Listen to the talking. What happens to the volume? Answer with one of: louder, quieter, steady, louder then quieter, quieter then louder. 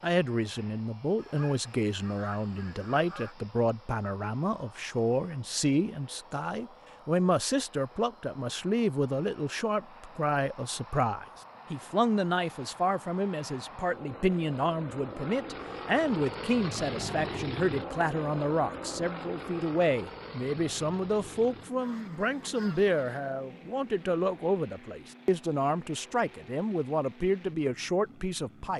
steady.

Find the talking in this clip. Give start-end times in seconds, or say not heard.
0.0-28.7.